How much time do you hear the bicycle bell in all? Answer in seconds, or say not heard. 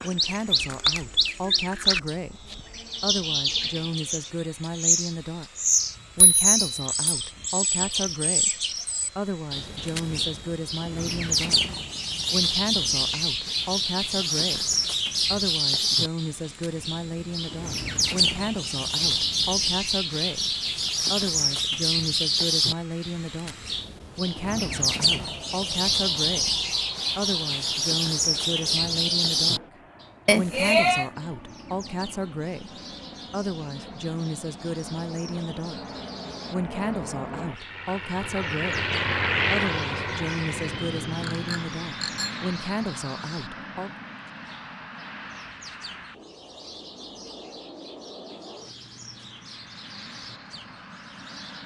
3 s.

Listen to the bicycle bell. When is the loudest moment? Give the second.
31 s.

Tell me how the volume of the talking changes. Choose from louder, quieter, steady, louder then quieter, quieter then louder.
steady.